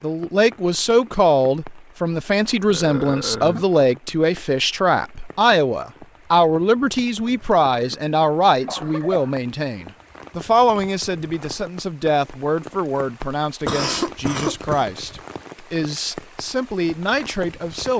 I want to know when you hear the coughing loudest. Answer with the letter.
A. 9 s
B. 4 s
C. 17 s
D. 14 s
D.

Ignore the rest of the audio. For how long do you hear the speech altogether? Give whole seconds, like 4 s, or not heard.
18 s.